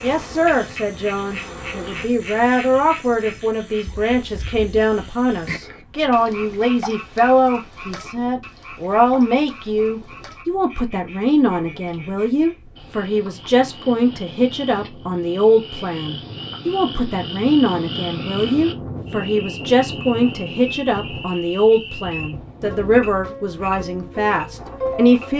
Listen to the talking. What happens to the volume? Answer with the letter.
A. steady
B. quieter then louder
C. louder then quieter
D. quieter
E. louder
A.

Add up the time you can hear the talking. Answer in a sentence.
You can hear the talking for 25 seconds altogether.